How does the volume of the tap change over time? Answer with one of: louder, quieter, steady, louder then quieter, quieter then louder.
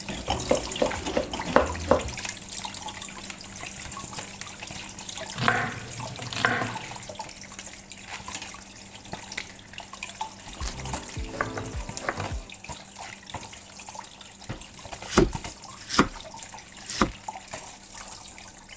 quieter.